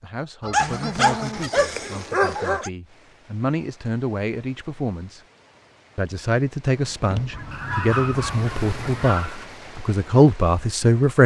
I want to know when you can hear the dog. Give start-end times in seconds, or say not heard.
0.5-2.7, 7.5-9.4.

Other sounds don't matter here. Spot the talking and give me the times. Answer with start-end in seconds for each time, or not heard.
0.0-5.2, 6.0-11.2.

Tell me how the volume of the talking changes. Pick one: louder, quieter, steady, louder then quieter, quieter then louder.
louder.